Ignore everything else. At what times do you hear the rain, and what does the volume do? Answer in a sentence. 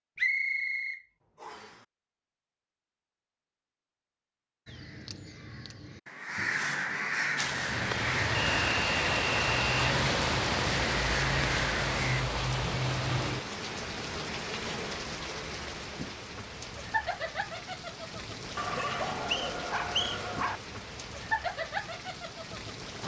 You can hear the rain from 7.3 to 23.0 s, getting quieter.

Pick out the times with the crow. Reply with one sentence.
The crow can be heard from 4.7 to 12.2 s.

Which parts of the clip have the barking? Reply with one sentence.
You can hear the barking from 18.6 to 20.6 s.